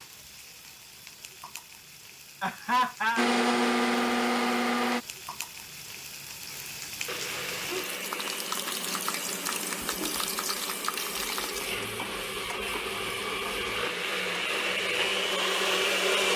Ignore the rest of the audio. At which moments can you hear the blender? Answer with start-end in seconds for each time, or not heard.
3.1-5.0, 7.0-16.3.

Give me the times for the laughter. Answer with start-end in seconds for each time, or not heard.
2.4-3.2.